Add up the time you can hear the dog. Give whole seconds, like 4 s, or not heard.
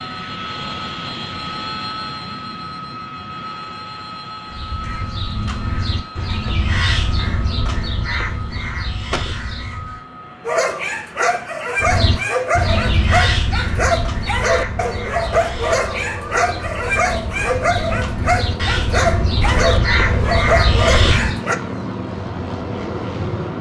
11 s.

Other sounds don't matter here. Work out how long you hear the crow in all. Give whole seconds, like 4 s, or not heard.
15 s.